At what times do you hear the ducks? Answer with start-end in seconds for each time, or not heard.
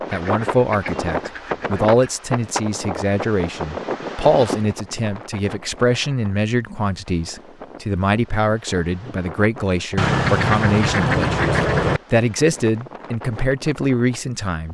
0.1-2.1, 9.9-12.0.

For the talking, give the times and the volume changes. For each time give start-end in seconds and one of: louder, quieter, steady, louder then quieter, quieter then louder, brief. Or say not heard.
0.1-14.7 steady.